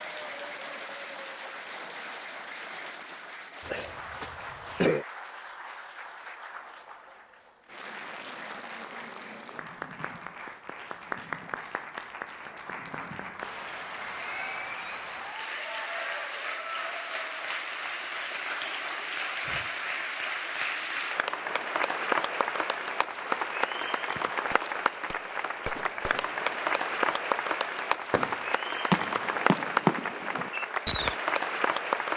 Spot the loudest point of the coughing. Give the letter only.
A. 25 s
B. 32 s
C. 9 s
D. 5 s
D.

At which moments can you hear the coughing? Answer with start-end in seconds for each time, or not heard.
3.6-5.0.